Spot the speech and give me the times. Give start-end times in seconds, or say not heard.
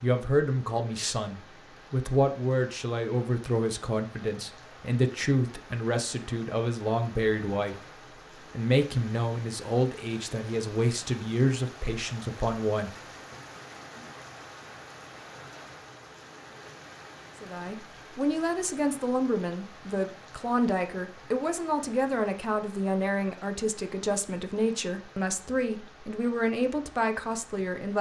0.0-7.8, 8.6-12.9, 17.4-27.9.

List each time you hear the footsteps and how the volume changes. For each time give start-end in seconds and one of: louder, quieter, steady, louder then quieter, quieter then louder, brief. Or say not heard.
not heard.